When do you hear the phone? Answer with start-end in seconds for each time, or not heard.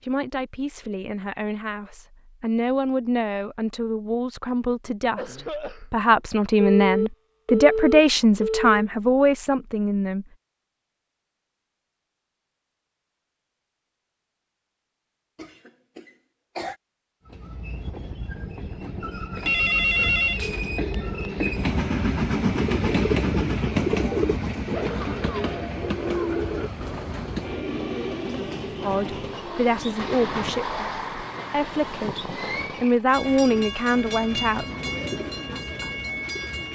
6.6-8.7, 19.4-20.8.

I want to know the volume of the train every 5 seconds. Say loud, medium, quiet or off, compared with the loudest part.
off, off, off, medium, loud, medium, medium, medium.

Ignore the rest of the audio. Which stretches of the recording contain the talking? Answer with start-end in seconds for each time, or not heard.
0.0-10.2, 28.8-34.6.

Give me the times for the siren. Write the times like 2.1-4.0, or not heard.
not heard.